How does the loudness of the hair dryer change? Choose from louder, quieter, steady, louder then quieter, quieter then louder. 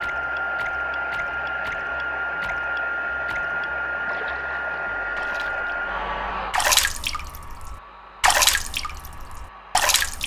quieter.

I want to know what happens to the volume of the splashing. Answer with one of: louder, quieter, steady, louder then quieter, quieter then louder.
louder.